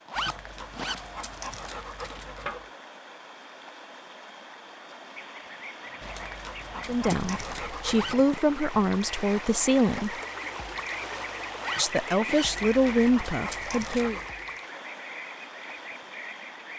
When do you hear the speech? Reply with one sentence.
The speech can be heard from 6.8 to 10.2 s and from 11.8 to 14.2 s.